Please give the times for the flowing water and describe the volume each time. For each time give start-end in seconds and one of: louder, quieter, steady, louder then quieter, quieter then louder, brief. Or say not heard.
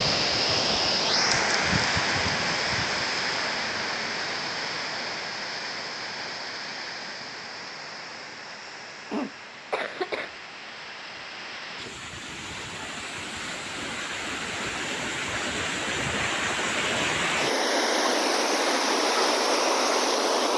0.0-20.5 quieter then louder.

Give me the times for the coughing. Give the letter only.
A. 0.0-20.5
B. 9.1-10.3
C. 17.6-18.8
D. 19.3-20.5
B.